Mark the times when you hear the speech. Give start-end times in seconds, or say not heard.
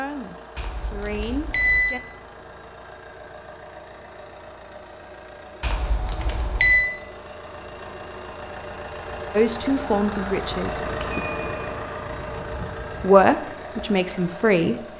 0.0-2.0, 9.3-11.2, 13.0-14.8.